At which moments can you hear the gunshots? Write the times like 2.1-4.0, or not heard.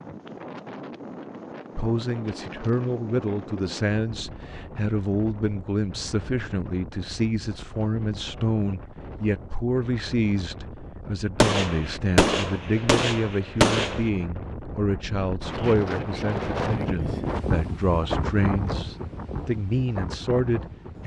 11.4-14.1.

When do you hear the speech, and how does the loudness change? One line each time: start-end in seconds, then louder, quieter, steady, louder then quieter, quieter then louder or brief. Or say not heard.
1.8-21.0 steady.